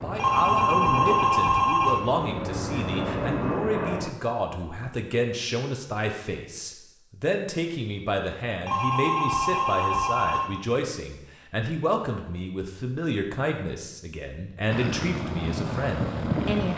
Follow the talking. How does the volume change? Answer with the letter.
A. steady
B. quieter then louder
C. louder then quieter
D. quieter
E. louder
A.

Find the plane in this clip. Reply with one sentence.
The plane can be heard from 0.0 to 4.2 s and from 14.7 to 16.7 s.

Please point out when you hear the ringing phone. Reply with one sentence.
The ringing phone can be heard from 0.1 to 2.0 s and from 8.7 to 10.4 s.